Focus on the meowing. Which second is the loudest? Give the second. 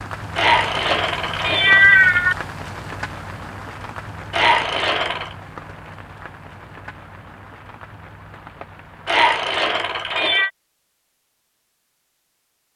2 s.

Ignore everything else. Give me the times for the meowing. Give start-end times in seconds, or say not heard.
0.3-2.4, 4.3-5.3, 9.1-10.5.